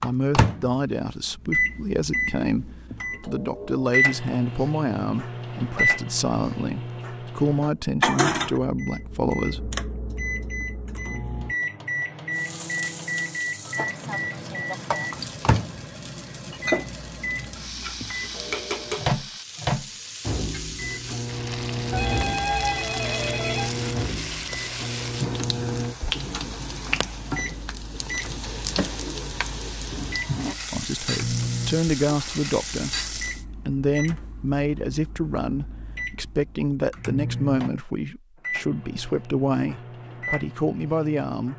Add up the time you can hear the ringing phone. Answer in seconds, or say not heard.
2 s.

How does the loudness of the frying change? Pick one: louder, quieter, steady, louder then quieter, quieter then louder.
steady.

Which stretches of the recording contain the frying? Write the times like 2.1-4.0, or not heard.
12.3-33.5.